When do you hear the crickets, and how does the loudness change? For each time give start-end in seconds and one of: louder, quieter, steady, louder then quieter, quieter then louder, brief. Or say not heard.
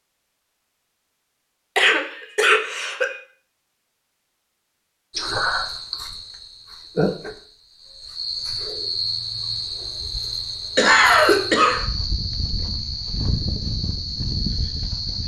5.1-15.2 steady.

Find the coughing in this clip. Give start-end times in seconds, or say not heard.
1.8-3.1, 5.2-6.0, 10.8-11.8.